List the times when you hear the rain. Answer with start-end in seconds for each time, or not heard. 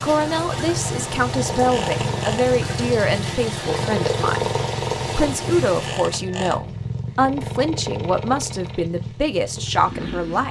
0.0-6.2.